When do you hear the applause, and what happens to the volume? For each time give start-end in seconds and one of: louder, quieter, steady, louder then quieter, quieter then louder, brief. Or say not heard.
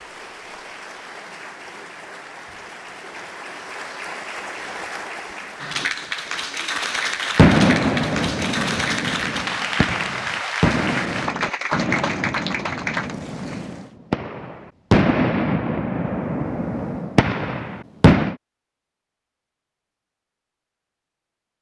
0.0-13.8 louder.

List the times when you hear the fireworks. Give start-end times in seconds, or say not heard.
7.3-18.4.